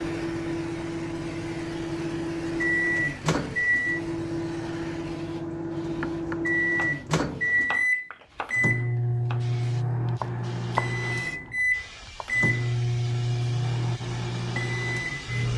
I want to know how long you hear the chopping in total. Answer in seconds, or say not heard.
5 s.